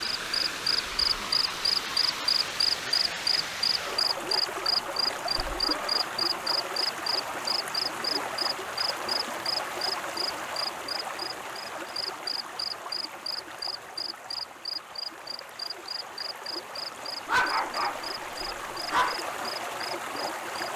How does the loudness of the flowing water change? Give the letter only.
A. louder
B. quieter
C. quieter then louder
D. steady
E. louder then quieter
C.